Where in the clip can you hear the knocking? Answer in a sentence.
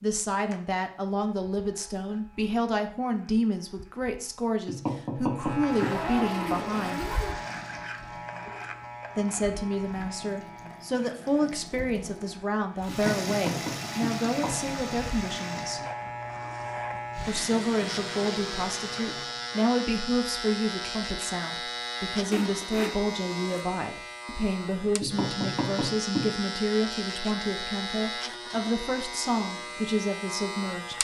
The knocking can be heard from 4.7 to 5.9 s, from 12.8 to 14.6 s and from 25.0 to 26.2 s.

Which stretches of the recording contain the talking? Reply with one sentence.
You can hear the talking from 0.0 to 7.0 s, from 9.2 to 15.8 s and from 17.2 to 30.9 s.